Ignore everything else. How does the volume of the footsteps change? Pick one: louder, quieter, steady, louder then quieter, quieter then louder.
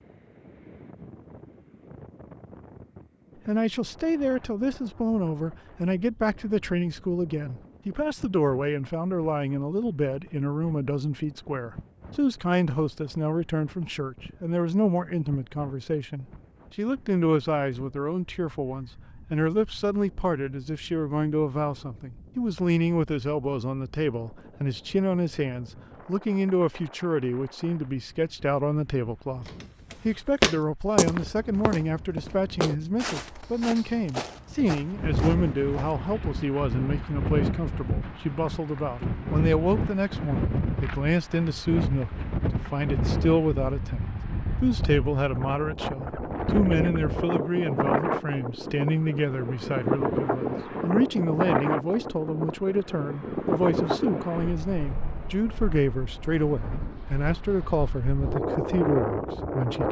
quieter.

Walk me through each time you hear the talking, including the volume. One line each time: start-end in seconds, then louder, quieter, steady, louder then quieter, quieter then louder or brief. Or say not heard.
3.5-29.4 steady
30.1-59.8 steady.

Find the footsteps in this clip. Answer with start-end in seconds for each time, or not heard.
29.4-36.0.